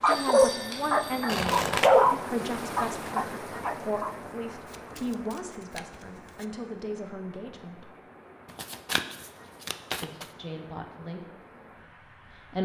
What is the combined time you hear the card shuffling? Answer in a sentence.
The card shuffling can be heard for 4 seconds in total.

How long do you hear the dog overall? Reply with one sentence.
You can hear the dog for 4 seconds altogether.